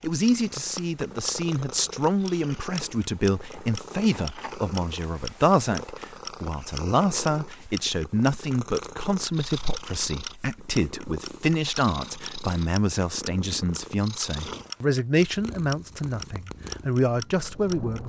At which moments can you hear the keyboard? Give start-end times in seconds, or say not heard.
not heard.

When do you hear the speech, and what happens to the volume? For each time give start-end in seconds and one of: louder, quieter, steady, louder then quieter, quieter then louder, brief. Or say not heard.
0.0-18.0 steady.